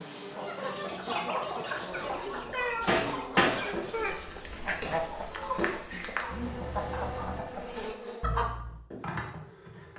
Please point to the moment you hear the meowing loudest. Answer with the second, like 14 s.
3 s.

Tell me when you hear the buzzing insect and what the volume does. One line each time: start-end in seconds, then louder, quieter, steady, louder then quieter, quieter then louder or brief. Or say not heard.
0.0-9.9 louder.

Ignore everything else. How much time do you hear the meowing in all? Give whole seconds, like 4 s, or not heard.
2 s.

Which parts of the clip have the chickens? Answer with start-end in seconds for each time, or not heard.
0.3-8.8.